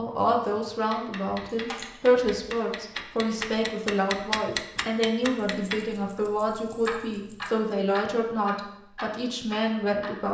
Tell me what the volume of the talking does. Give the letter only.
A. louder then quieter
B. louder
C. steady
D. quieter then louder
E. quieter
C.